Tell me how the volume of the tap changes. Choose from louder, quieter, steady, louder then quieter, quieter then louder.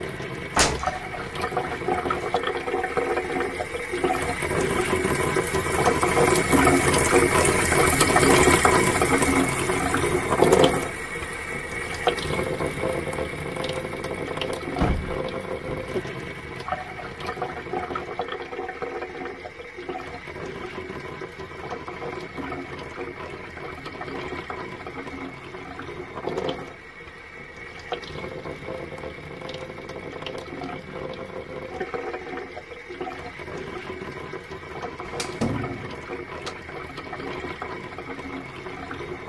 quieter.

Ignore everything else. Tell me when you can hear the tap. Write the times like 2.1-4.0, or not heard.
0.0-39.2.